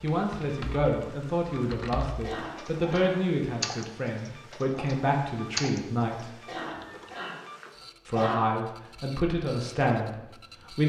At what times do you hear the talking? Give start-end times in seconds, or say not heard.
0.0-6.3, 8.1-10.8.